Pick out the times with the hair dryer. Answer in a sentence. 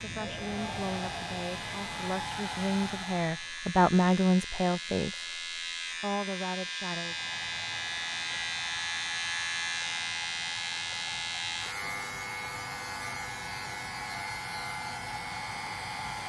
The hair dryer can be heard from 0.0 to 3.5 s and from 6.9 to 16.2 s.